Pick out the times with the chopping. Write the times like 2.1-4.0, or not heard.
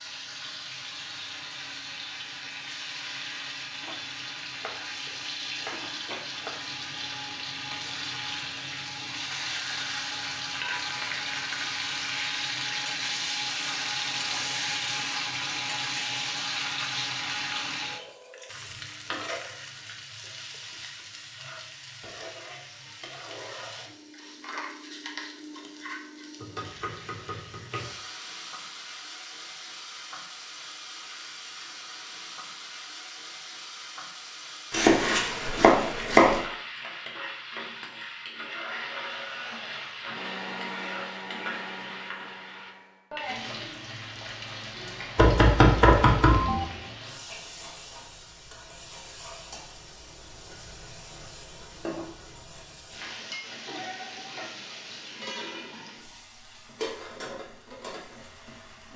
4.6-6.5, 26.4-27.9, 34.7-36.4, 45.1-46.6.